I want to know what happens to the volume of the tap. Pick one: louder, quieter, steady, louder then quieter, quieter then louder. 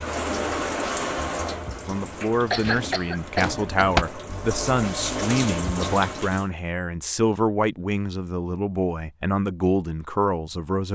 quieter then louder.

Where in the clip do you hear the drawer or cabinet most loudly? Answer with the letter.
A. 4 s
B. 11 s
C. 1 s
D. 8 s
A.